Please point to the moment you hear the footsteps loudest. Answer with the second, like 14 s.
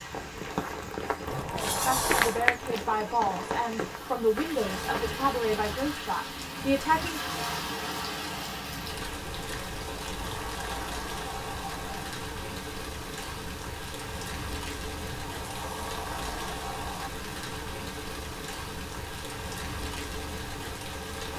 2 s.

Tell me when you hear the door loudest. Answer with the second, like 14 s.
2 s.